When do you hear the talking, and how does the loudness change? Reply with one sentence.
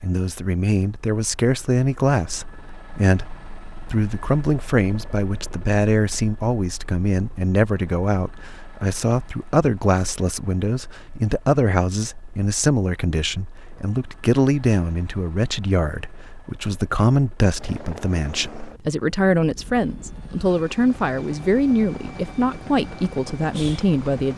You can hear the talking from 0.0 to 24.3 s, at a steady volume.